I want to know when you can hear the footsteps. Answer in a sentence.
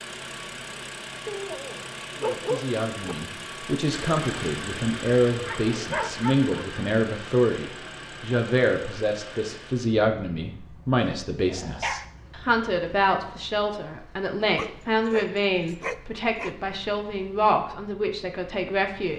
The footsteps can't be heard in this clip.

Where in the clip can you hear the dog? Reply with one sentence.
The dog can be heard from 1.2 to 3.1 s, from 5.3 to 6.8 s, from 11.0 to 12.1 s and from 14.6 to 16.6 s.